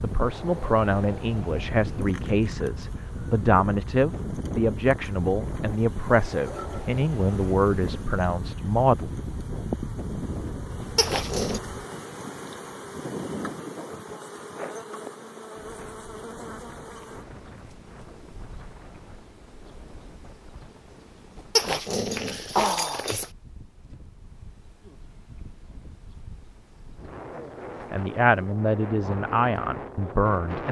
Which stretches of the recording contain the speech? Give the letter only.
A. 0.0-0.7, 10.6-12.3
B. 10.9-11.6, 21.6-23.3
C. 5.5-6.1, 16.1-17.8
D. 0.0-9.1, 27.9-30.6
D.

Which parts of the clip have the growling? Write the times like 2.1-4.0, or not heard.
10.9-11.6, 21.6-23.3.